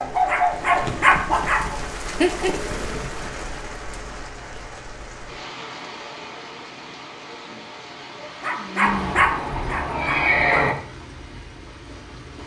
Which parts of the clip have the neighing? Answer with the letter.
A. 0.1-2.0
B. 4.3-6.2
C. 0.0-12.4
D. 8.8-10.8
D.